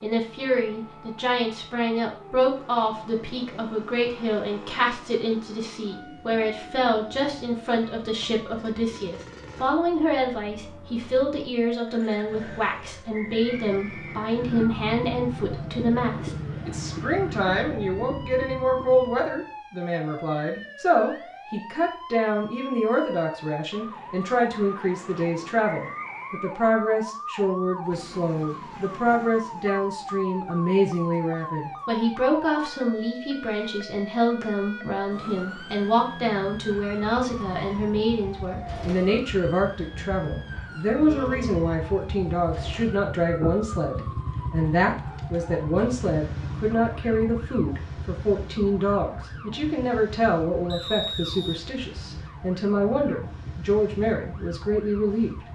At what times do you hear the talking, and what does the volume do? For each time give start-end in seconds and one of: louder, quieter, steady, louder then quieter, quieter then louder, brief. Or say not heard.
0.0-55.5 steady.